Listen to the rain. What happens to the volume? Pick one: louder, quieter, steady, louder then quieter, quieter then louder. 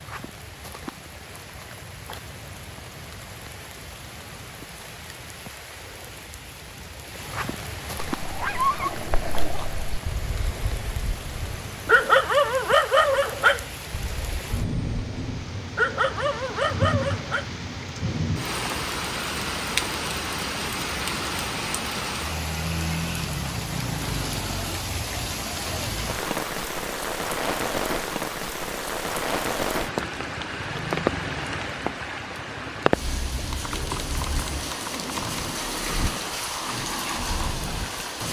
louder.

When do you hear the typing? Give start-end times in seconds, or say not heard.
33.5-35.5.